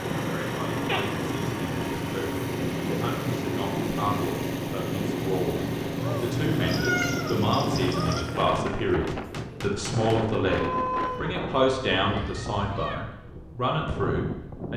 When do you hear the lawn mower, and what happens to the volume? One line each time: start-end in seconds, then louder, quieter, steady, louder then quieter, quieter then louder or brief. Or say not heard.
0.0-8.6 steady.